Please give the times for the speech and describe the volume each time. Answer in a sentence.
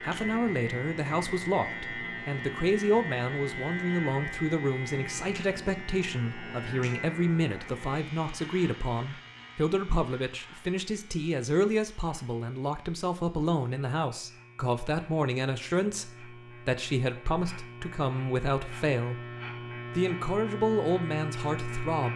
You can hear the speech from 0.0 to 19.2 s, at a steady volume; and briefly from 19.9 to 22.1 s.